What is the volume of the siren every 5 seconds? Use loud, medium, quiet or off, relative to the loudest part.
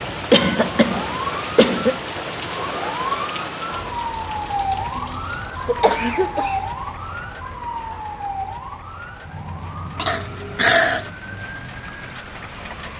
loud, loud, medium.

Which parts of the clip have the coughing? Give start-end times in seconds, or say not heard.
0.3-2.0, 5.0-6.6, 9.9-11.1.